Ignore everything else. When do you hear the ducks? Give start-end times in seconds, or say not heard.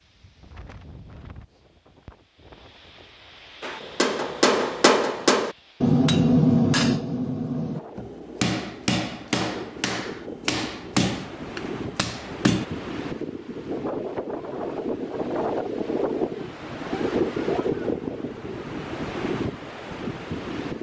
not heard.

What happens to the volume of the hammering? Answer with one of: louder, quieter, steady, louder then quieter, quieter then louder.
quieter.